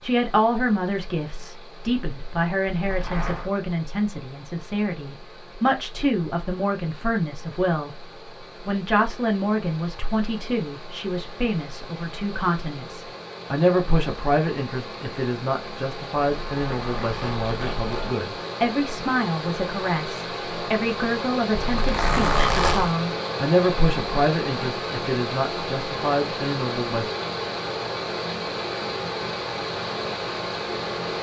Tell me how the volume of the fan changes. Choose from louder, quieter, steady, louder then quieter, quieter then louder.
louder.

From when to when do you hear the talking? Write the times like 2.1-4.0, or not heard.
0.0-7.9, 8.7-27.1.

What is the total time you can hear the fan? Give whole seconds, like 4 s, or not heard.
31 s.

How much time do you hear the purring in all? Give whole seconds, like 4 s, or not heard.
not heard.